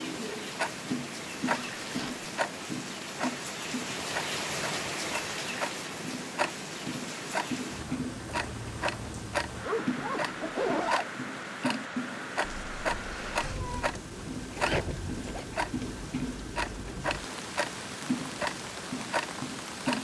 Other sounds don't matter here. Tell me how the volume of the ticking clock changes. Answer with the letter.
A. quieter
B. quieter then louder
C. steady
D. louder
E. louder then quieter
C.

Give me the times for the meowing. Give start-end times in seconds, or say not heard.
12.4-14.0.